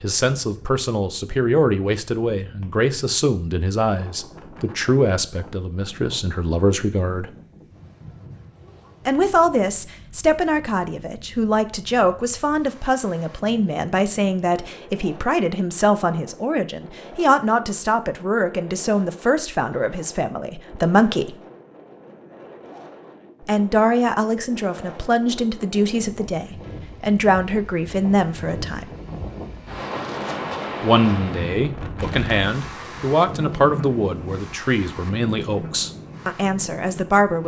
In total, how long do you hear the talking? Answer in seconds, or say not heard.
32 s.